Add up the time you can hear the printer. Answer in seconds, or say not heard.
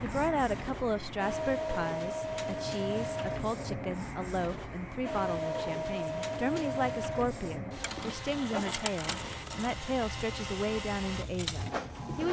12 s.